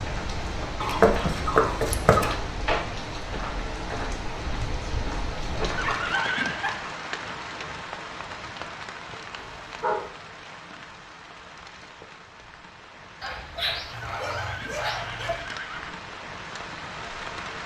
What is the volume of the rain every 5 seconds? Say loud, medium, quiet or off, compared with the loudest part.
loud, loud, medium, loud.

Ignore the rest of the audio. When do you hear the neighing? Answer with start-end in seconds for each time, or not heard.
5.8-6.7, 14.0-16.0.